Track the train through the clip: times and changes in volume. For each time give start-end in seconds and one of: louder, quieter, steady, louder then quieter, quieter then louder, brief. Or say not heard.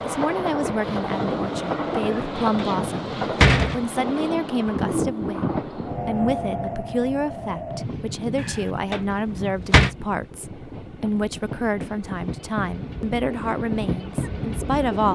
0.0-15.1 quieter then louder.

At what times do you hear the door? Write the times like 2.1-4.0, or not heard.
2.0-3.8, 8.3-9.9.